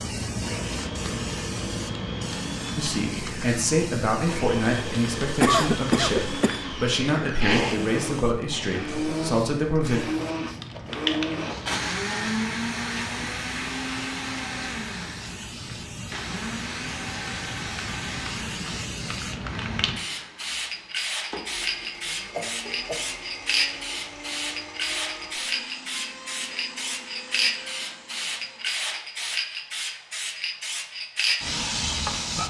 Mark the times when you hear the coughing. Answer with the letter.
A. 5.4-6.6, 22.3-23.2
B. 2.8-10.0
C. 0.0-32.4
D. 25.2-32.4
A.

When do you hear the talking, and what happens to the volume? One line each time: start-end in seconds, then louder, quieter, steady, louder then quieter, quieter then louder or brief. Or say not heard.
2.8-10.0 steady.